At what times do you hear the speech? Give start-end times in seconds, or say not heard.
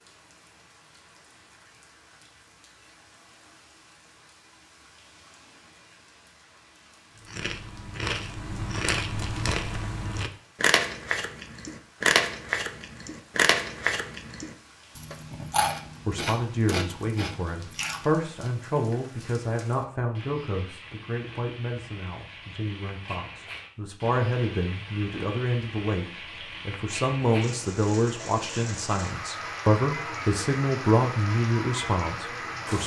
16.1-32.8.